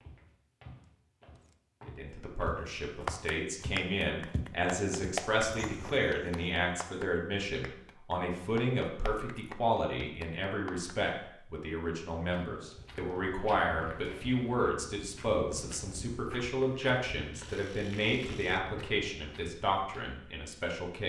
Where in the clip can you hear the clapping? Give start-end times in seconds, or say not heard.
3.0-10.9.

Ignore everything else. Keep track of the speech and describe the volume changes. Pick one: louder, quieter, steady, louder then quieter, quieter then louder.
steady.